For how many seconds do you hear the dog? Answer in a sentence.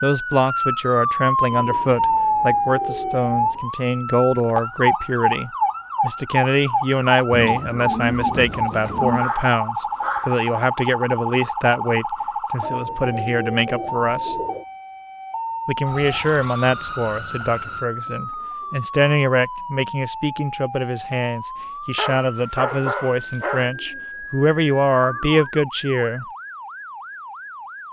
The dog can be heard for 3 seconds in total.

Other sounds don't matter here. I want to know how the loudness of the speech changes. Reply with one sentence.
The volume of the speech stays about the same.